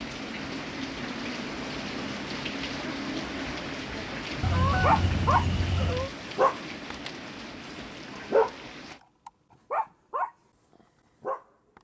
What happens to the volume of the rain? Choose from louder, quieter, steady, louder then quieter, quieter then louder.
quieter.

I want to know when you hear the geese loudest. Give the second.
5 s.